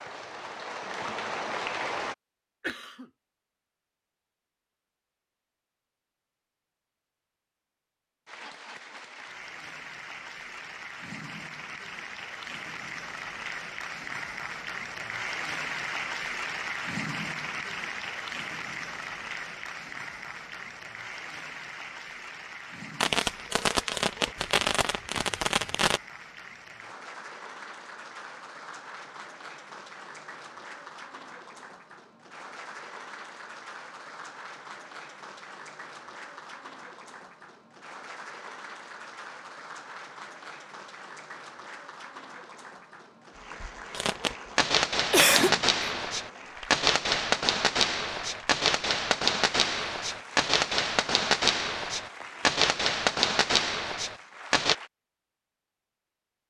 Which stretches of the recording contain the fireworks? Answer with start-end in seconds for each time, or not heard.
23.0-26.0, 43.9-54.8.